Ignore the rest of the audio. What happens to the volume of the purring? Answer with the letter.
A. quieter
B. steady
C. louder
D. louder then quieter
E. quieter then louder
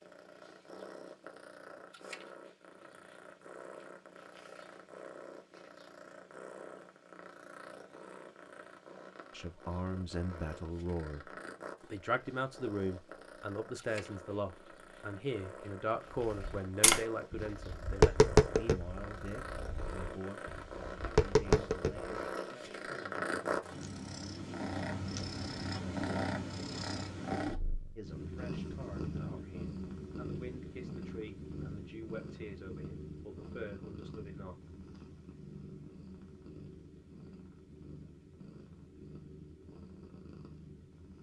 D.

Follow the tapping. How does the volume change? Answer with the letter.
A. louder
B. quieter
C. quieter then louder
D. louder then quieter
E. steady
C.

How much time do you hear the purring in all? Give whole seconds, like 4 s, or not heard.
41 s.